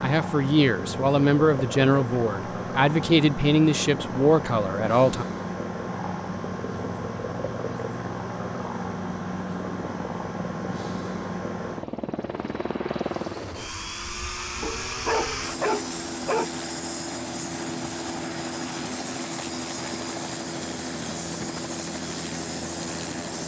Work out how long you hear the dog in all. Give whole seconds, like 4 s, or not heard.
2 s.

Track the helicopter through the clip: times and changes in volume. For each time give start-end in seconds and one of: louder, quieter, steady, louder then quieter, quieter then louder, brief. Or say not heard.
0.0-23.4 steady.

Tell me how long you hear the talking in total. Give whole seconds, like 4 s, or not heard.
5 s.